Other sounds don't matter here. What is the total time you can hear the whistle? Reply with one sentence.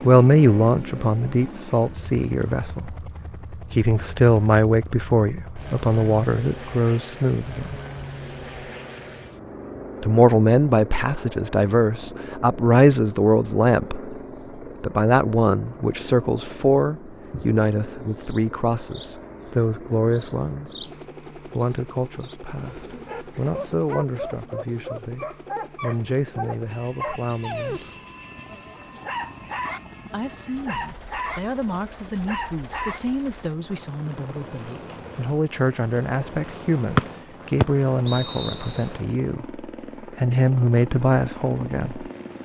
The whistle can be heard for 2 seconds in total.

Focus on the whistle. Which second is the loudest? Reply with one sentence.
The loudest moment of the whistle is at 37 seconds.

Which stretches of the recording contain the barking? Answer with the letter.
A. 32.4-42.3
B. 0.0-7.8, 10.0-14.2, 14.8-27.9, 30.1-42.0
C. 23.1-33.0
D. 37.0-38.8
C.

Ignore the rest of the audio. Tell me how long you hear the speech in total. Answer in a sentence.
You can hear the speech for 37 seconds altogether.